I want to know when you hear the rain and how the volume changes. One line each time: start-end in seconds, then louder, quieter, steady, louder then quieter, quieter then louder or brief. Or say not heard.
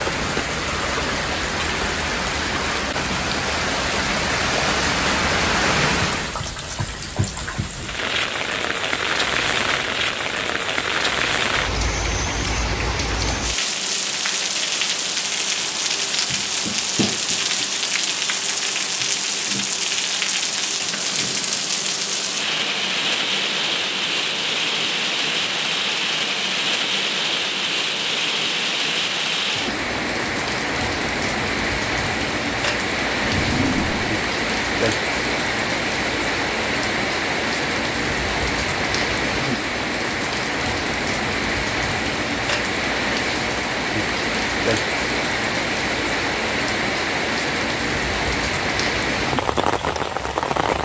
0.0-50.8 steady.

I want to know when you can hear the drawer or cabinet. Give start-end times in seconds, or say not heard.
33.2-34.1.